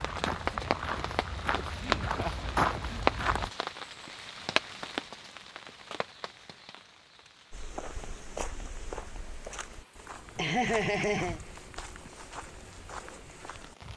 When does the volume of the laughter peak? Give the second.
11 s.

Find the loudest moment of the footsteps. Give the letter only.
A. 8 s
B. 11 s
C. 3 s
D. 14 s
C.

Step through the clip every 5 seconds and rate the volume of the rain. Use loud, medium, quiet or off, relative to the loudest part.
loud, quiet, quiet.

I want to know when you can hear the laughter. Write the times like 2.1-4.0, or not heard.
1.8-3.0, 10.3-11.4.